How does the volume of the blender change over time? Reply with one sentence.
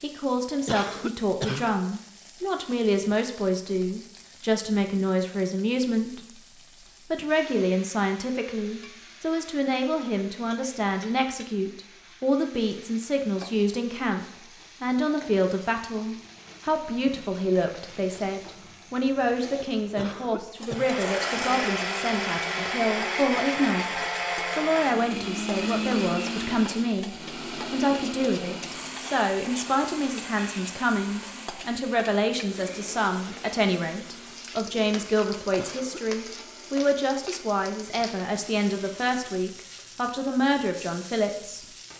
The loudness of the blender goes down.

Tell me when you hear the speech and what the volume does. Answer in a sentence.
The speech can be heard from 0.0 to 41.6 s, at a steady volume.